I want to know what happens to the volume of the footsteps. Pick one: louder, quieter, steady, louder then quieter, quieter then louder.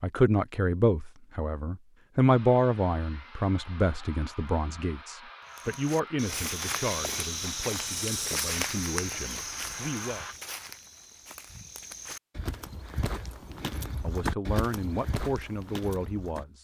quieter then louder.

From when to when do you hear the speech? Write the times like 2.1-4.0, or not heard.
0.0-10.2, 13.5-16.5.